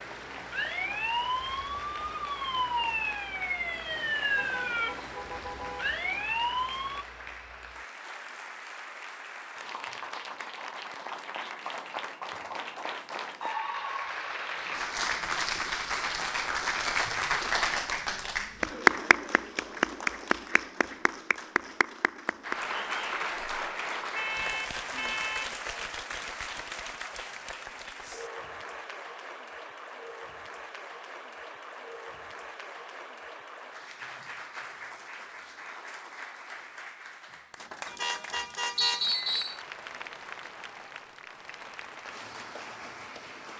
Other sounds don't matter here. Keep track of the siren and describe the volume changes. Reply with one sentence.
The volume of the siren stays about the same.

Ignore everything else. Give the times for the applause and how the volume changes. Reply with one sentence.
The applause can be heard from 0.0 to 43.5 s, getting louder then quieter.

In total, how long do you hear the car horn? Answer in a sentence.
You can hear the car horn for 4 seconds altogether.